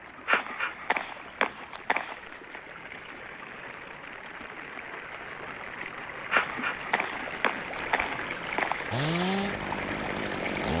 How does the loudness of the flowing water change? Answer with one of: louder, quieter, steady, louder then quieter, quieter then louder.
louder.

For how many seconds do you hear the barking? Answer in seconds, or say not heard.
5 s.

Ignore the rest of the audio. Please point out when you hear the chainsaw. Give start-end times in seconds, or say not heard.
8.9-10.7.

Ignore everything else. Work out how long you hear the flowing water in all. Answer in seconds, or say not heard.
11 s.